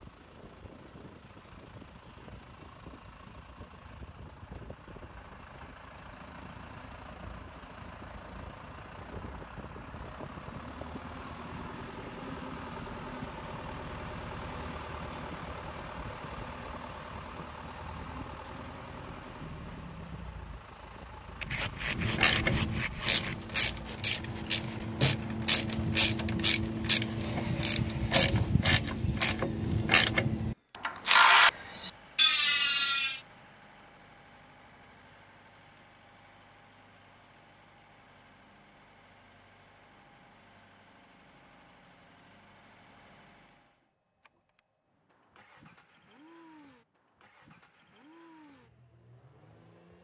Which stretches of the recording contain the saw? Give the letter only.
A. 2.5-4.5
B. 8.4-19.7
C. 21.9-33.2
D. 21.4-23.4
D.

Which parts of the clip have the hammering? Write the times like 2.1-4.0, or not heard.
not heard.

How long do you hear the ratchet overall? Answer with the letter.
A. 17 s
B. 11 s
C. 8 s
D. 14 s
B.